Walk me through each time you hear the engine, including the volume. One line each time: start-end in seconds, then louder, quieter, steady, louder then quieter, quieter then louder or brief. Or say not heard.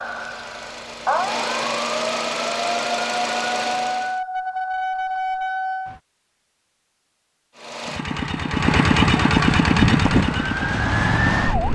0.0-4.2 louder
7.5-11.7 louder then quieter.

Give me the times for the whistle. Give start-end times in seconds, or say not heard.
not heard.